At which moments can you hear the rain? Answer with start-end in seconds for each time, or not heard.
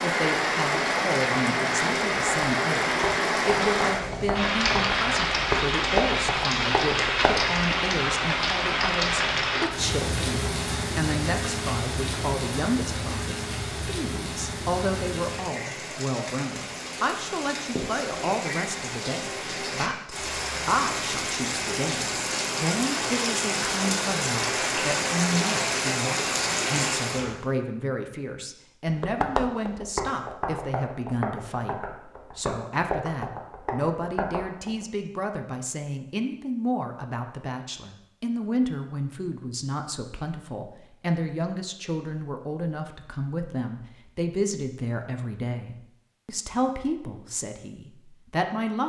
0.0-27.4.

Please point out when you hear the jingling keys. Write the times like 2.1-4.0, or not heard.
not heard.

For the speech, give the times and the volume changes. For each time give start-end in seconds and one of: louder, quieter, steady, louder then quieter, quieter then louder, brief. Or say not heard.
0.0-48.8 steady.